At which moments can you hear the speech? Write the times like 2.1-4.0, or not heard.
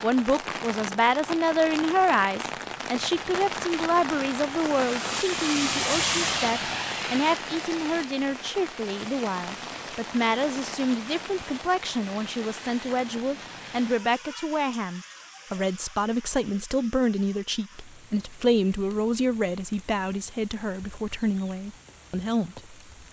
0.0-22.8.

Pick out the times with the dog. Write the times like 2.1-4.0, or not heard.
not heard.